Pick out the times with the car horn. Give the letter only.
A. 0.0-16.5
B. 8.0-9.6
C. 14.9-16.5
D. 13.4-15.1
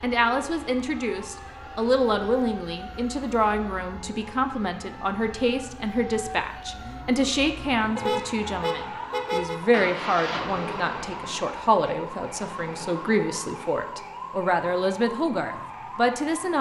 B.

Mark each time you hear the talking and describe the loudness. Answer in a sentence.
You can hear the talking from 0.0 to 16.5 s, at a steady volume.